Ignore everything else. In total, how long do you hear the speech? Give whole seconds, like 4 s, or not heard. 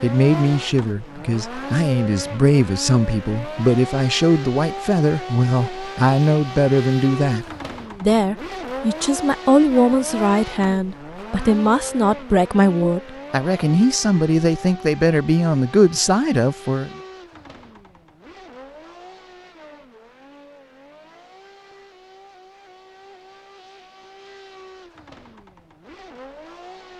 17 s.